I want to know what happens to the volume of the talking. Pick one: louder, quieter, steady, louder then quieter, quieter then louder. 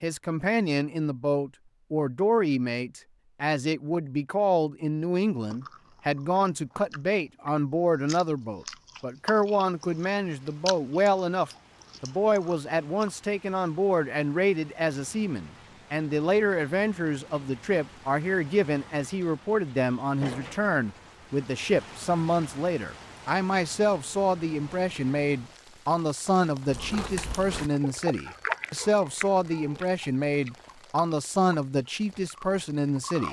steady.